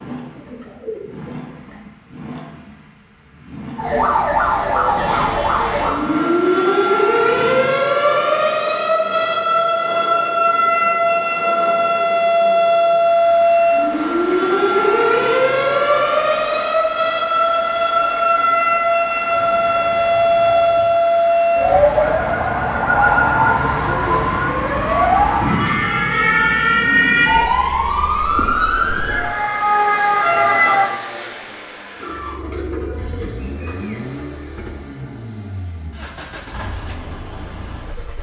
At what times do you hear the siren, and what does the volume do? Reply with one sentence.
You can hear the siren from 3.8 to 30.9 s, at a steady volume.